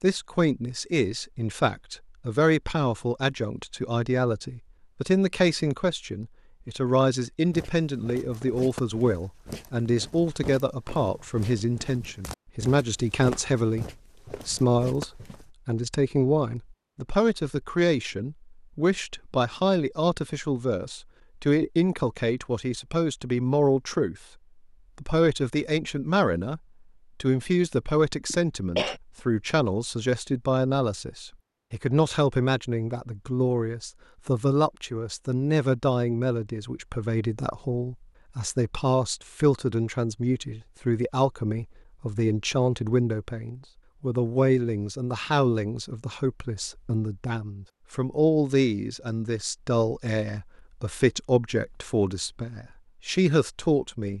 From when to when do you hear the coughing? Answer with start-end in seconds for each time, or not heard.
28.3-29.0.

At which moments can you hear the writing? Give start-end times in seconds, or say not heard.
not heard.